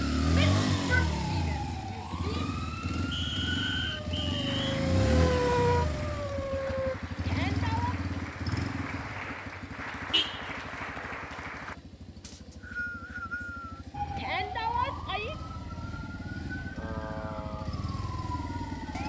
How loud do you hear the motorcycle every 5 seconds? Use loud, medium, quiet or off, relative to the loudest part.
loud, loud, medium, medium.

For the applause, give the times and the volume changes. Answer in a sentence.
The applause can be heard from 4.5 to 11.8 s, getting louder.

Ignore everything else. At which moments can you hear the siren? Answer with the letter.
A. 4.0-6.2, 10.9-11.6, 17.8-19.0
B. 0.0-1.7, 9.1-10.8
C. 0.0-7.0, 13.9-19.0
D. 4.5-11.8
C.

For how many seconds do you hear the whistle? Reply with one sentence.
The whistle can be heard for 3 seconds in total.